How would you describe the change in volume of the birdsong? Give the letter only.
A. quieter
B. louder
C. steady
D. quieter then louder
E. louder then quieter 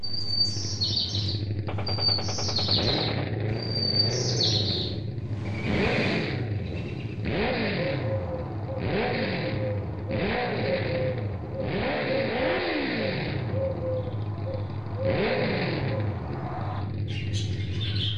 A.